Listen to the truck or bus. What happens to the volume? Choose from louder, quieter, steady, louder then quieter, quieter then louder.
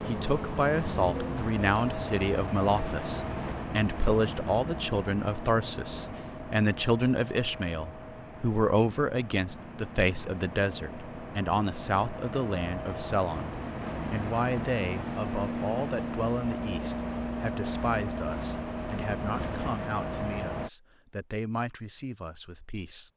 quieter then louder.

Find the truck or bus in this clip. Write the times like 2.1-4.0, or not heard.
0.0-20.7.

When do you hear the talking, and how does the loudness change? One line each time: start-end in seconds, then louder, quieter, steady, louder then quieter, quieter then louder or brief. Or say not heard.
0.1-23.1 quieter.